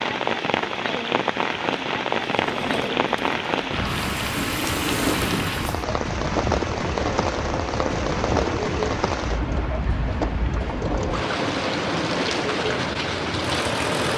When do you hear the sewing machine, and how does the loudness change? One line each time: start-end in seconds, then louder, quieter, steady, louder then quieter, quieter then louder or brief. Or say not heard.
2.3-14.1 steady.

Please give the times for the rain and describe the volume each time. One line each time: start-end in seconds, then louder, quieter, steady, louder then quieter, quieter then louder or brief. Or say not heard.
0.0-14.1 steady.